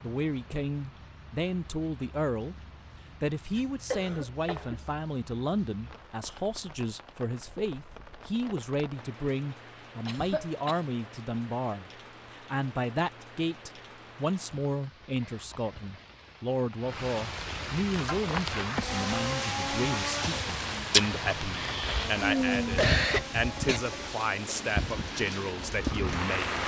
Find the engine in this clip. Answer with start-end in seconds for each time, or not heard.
18.8-26.6.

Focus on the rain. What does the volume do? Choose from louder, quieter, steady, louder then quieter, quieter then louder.
louder.